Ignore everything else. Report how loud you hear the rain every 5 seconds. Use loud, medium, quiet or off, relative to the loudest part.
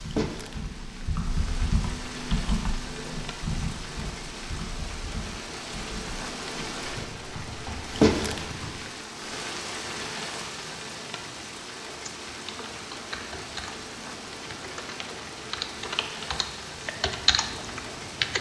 medium, loud, medium, medium.